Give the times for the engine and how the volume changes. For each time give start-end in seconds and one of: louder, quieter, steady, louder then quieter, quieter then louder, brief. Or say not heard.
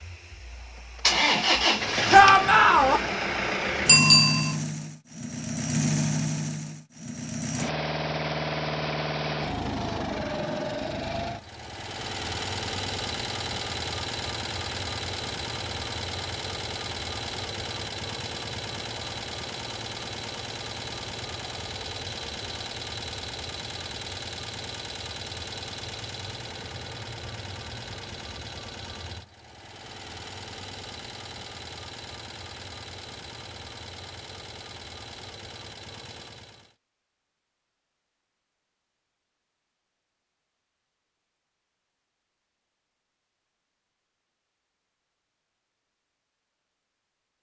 0.0-36.8 quieter.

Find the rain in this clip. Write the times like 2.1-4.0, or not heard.
not heard.